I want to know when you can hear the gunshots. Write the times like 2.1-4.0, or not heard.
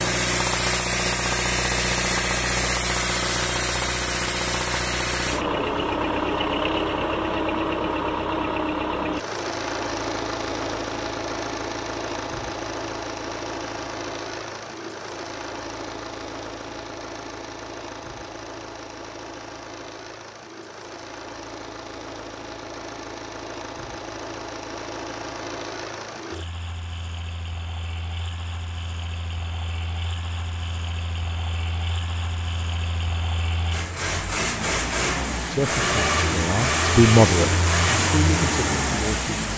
not heard.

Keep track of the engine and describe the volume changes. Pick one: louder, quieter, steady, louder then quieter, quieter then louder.
quieter then louder.